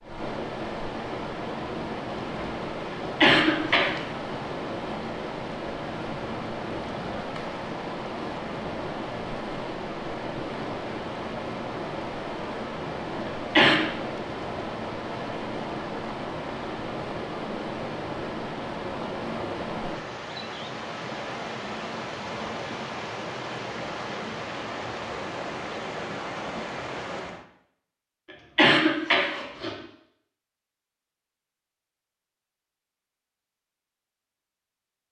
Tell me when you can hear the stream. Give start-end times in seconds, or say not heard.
0.0-27.4.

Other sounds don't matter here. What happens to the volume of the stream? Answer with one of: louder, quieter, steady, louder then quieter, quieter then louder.
steady.